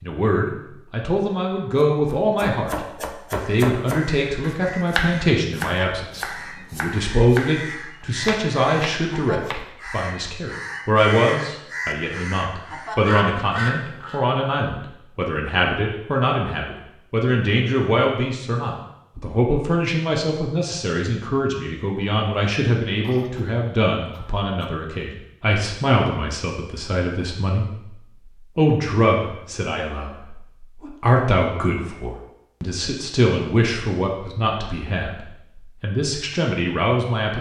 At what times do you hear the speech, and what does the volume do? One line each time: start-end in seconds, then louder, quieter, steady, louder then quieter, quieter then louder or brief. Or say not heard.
0.0-37.3 steady.